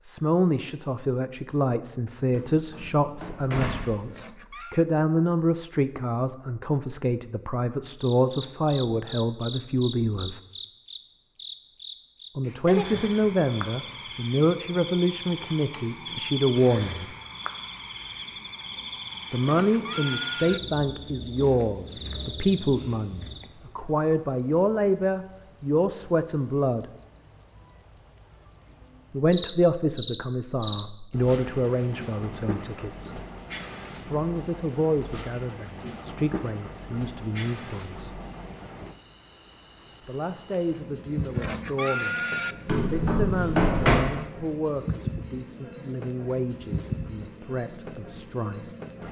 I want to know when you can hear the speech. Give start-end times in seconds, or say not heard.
0.0-10.4, 12.3-17.1, 19.3-26.9, 29.1-33.2, 34.0-38.2, 40.0-48.7.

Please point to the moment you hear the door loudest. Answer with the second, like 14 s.
44 s.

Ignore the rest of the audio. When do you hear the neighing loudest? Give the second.
42 s.